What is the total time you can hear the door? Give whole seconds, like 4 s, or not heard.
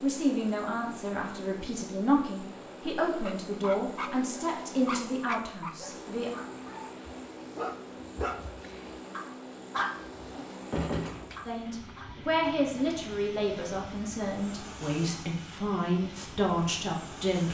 2 s.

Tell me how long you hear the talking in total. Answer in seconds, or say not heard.
12 s.